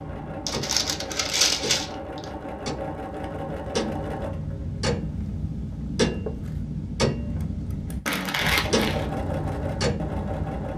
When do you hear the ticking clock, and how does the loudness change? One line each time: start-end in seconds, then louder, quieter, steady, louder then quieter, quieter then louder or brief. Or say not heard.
0.0-10.7 louder.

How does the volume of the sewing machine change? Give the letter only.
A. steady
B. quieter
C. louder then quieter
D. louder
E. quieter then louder
E.